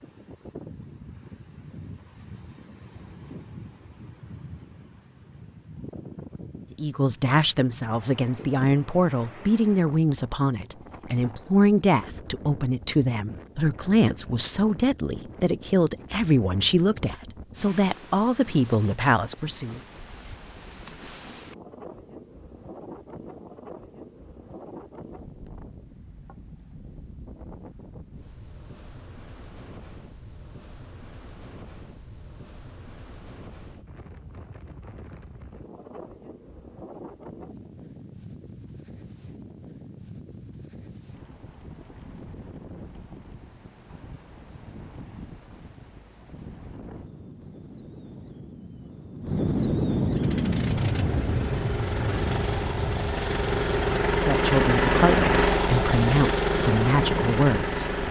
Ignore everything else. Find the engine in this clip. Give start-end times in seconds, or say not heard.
50.1-58.0.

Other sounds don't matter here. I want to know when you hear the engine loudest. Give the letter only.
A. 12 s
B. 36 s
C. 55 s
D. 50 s
C.